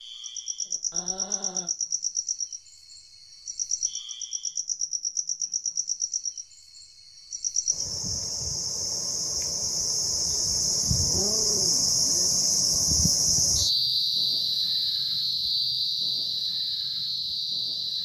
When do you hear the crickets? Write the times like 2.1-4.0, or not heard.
0.0-18.0.